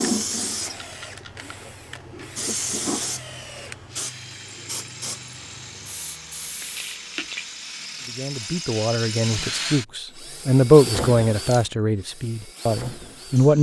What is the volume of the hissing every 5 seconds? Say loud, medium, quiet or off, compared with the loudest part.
loud, medium, off.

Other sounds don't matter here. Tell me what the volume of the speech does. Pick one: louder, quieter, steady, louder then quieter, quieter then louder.
louder then quieter.